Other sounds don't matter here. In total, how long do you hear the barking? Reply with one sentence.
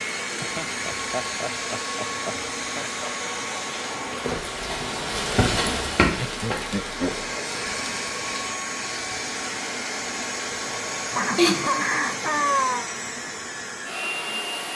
The barking can't be heard in this clip.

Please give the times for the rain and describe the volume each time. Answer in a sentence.
The rain can be heard from 0.0 to 11.2 s, getting louder then quieter.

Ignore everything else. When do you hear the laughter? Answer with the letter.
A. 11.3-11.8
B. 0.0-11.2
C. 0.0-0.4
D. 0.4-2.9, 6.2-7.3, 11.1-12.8
D.